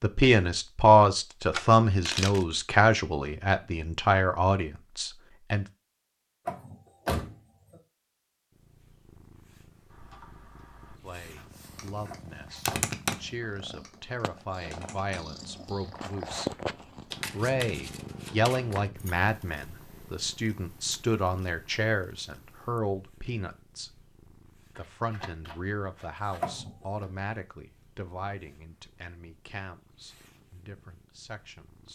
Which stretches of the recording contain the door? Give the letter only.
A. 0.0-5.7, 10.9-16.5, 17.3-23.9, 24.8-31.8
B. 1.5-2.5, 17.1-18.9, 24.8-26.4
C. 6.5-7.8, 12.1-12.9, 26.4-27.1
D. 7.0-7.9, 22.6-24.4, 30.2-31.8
C.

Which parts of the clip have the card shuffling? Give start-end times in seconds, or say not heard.
1.5-2.5, 17.1-18.9, 24.8-26.4.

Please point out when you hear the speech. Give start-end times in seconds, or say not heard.
0.0-5.7, 10.9-16.5, 17.3-23.9, 24.8-31.8.